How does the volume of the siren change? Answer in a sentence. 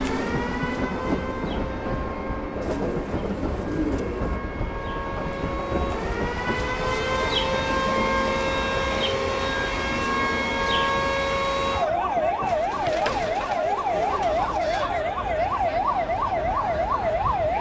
The volume of the siren goes up.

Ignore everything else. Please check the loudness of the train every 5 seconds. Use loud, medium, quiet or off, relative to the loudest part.
loud, loud, medium, medium.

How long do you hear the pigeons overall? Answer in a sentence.
The pigeons can be heard for 4 seconds in total.